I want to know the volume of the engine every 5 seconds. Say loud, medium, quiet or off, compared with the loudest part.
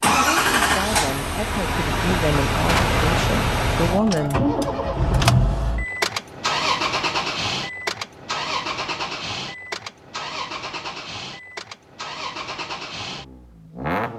loud, loud, medium.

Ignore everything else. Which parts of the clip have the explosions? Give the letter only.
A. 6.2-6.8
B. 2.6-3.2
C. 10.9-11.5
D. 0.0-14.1
B.